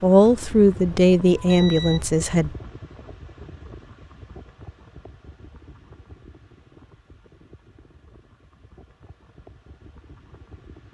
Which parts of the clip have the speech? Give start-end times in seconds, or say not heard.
0.0-2.5.